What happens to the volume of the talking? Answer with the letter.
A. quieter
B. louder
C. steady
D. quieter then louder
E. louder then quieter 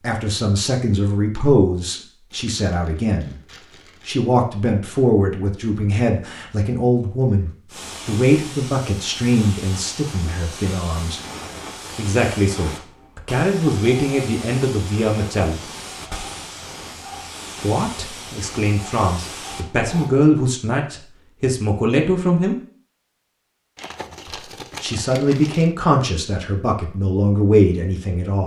C.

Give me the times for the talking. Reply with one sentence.
You can hear the talking from 0.0 to 3.4 s, from 4.0 to 11.2 s, from 11.9 to 15.7 s, from 17.6 to 22.6 s and from 24.2 to 28.4 s.